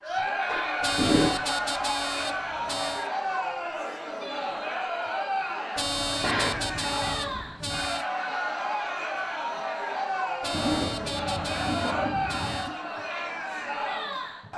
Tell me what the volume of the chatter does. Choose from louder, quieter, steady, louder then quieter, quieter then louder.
steady.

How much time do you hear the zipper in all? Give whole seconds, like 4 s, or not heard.
5 s.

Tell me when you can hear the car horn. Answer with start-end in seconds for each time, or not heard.
0.8-3.1, 5.8-8.1, 10.4-12.7.